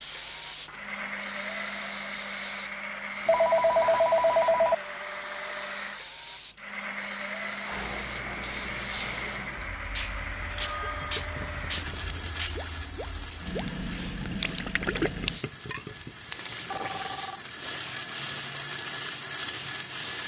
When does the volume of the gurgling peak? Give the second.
15 s.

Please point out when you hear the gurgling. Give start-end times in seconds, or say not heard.
10.2-17.9.